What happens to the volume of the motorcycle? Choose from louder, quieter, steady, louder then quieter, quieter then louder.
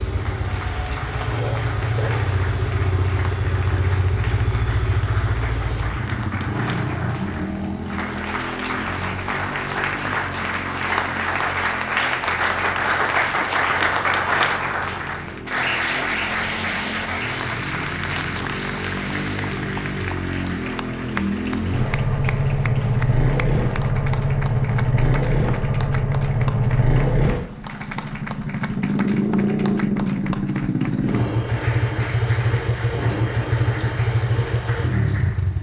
quieter then louder.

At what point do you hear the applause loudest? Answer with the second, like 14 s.
14 s.